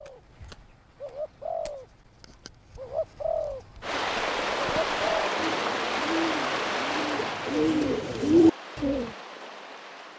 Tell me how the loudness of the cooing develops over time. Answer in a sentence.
The volume of the cooing goes up.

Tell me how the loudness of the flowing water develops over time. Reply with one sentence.
The loudness of the flowing water goes down.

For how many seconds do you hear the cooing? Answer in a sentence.
The cooing can be heard for 9 seconds in total.